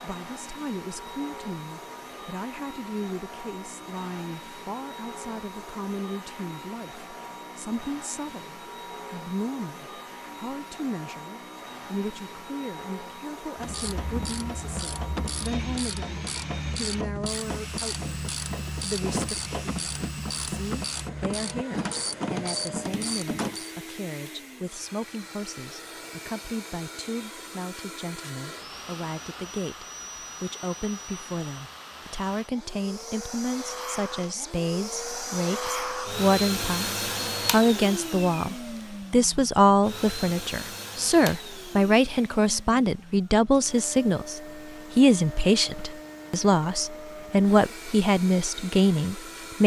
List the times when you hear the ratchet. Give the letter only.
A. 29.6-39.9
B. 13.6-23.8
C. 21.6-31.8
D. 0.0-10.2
B.